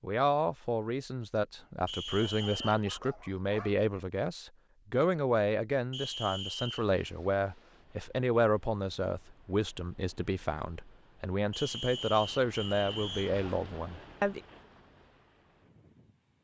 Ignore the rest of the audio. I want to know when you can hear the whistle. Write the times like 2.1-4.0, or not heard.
1.9-2.9, 5.9-6.8, 11.5-13.3.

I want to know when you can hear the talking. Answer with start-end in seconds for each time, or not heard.
0.0-14.4.